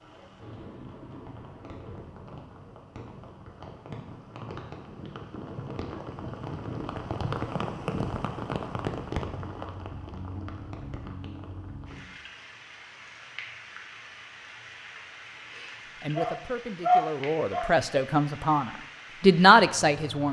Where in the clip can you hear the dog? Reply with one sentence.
The dog can be heard from 16.1 to 17.8 s.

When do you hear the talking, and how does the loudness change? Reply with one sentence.
The talking can be heard from 16.0 to 20.2 s, getting louder.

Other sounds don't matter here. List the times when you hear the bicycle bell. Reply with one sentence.
You can't hear the bicycle bell here.